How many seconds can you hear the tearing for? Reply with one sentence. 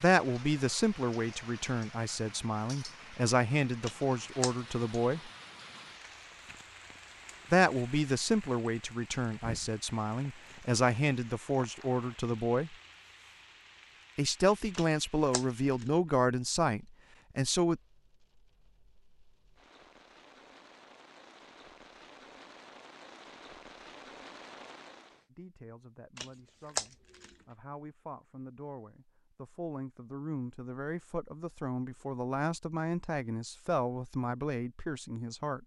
The tearing can be heard for 3 seconds in total.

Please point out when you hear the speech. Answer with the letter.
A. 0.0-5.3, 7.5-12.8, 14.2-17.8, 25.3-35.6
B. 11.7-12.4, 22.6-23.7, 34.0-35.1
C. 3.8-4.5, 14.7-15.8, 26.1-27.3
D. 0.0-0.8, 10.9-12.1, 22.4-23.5
A.